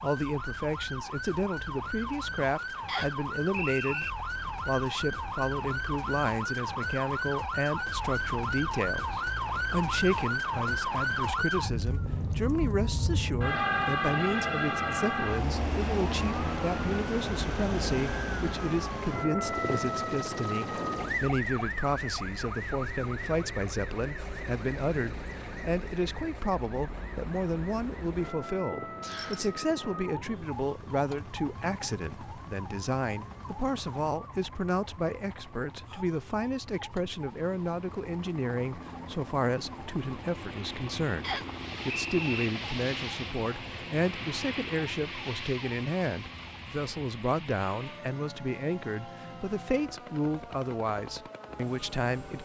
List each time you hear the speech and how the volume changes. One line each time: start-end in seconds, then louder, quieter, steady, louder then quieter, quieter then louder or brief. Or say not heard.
0.0-52.4 steady.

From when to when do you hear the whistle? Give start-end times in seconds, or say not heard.
2.9-4.1, 29.0-29.6, 41.2-42.2.